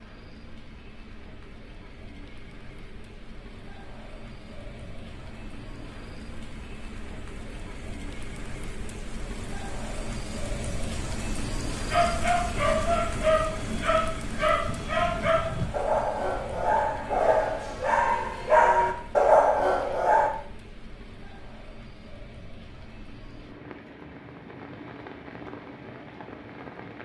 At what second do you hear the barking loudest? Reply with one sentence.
The loudest moment of the barking is at 19 seconds.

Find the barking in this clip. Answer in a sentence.
The barking can be heard from 11.8 to 20.3 s.